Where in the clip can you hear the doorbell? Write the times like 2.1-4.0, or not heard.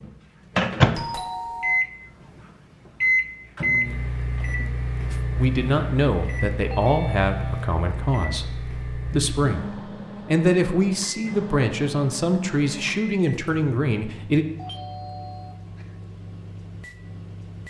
0.9-1.9, 6.7-7.7, 14.6-15.9.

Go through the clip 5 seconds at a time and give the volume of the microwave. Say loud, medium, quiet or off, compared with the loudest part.
loud, medium, quiet, quiet.